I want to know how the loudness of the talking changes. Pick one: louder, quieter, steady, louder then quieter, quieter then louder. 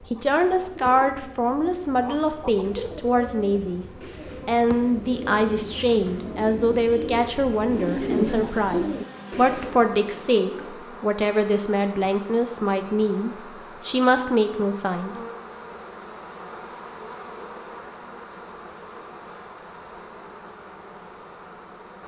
steady.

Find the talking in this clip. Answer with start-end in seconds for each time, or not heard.
0.1-3.9, 4.5-15.2.